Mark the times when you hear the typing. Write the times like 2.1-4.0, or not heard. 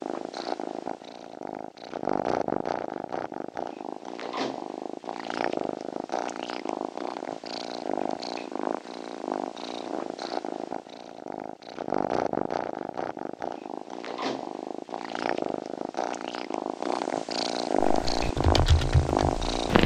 17.9-19.8.